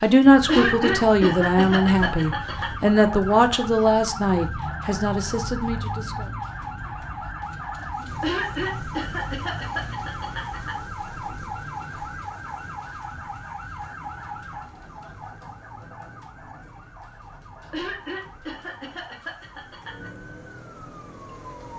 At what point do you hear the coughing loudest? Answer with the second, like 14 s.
1 s.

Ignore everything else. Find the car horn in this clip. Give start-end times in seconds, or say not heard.
not heard.